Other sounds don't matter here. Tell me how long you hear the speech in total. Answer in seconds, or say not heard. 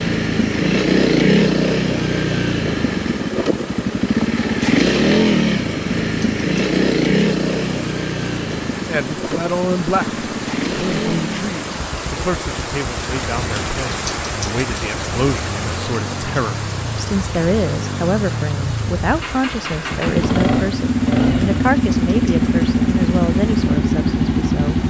16 s.